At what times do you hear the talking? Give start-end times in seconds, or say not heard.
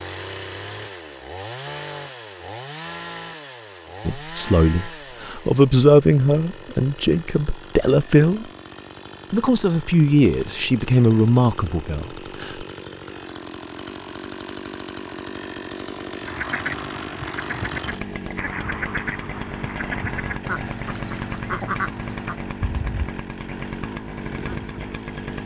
4.0-8.4, 9.3-12.7.